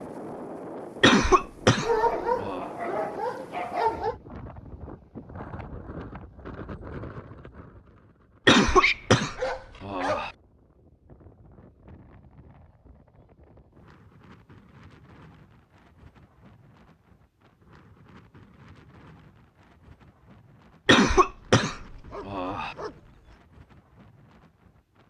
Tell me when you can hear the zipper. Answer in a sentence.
You can't hear the zipper here.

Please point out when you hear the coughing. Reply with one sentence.
You can hear the coughing from 1.0 to 2.6 s, from 8.4 to 10.3 s and from 20.9 to 22.8 s.